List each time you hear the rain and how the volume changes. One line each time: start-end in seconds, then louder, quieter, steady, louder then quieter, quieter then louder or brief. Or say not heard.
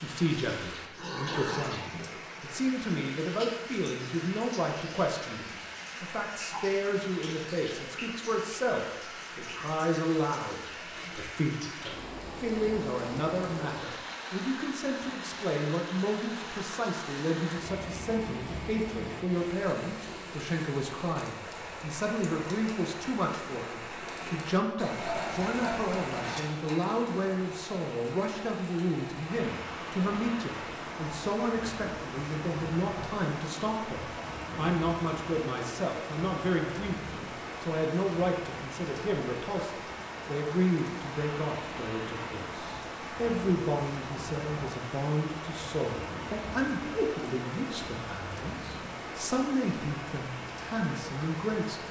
0.0-51.8 steady.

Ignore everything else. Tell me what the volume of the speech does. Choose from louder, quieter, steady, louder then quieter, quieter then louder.
steady.